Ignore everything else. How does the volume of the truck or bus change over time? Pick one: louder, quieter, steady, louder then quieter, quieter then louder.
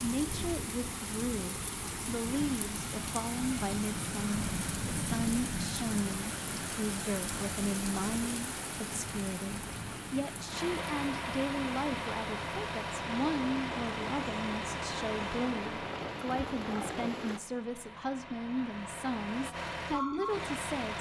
quieter then louder.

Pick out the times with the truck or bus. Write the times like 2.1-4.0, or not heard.
10.4-20.9.